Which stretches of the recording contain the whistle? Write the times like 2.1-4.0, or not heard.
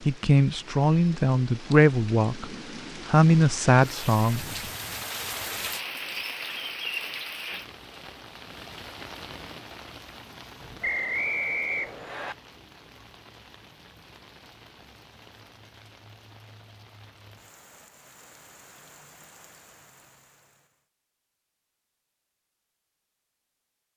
10.8-12.3.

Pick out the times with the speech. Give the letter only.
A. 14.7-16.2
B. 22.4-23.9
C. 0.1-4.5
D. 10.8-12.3
C.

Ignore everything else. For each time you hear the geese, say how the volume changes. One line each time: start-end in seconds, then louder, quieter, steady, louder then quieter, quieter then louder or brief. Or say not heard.
not heard.